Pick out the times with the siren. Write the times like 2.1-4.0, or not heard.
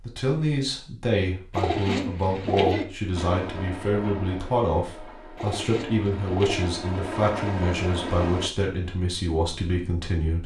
not heard.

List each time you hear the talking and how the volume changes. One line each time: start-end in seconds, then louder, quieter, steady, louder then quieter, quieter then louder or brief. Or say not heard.
0.0-10.4 steady.